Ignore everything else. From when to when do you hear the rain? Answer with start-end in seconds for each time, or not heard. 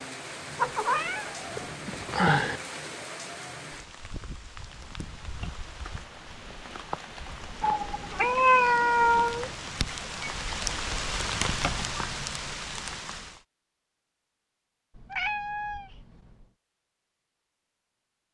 0.0-13.4.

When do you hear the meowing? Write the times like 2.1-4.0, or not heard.
0.6-2.6, 7.6-9.5, 14.9-16.4.